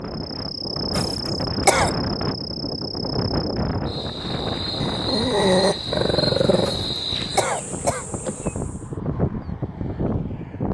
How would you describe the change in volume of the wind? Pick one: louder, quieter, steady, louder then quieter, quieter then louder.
quieter then louder.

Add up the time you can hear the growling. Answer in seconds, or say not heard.
2 s.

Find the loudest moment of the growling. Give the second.
6 s.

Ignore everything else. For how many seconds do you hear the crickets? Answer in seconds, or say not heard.
9 s.